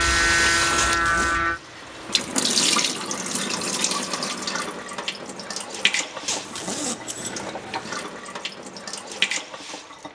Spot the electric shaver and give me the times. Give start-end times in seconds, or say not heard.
0.0-1.6.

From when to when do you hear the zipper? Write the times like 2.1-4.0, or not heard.
0.8-1.4, 6.2-8.0.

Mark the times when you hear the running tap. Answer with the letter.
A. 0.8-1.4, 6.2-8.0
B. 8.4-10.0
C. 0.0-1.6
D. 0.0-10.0
D.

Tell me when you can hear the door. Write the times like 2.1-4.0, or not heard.
not heard.